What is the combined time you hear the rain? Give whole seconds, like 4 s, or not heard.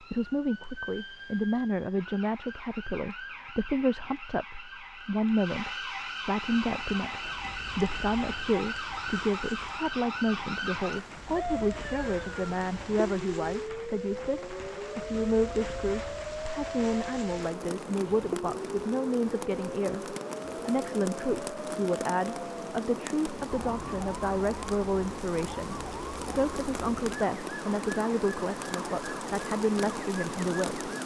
25 s.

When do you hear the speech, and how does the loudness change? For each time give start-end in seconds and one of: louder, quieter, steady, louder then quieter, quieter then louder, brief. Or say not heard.
0.1-30.9 steady.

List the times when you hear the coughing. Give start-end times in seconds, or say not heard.
not heard.